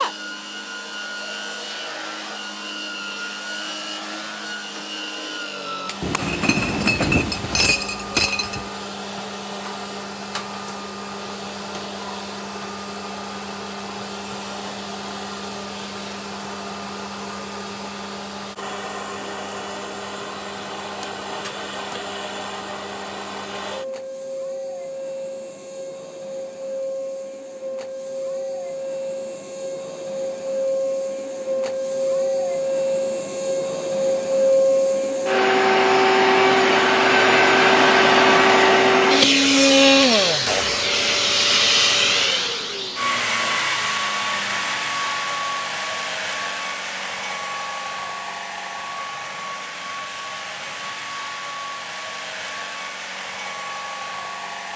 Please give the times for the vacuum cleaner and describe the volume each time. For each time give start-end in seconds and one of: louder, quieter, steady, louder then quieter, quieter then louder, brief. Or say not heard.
0.0-54.7 louder then quieter.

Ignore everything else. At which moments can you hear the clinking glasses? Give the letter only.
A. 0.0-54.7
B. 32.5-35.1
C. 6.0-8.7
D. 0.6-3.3
C.